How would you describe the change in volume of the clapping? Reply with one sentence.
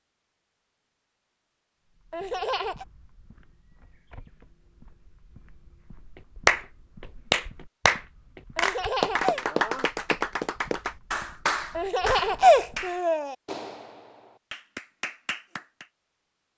The loudness of the clapping goes down.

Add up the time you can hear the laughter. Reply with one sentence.
You can hear the laughter for 3 seconds altogether.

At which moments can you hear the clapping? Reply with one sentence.
You can hear the clapping from 6.5 to 15.8 s.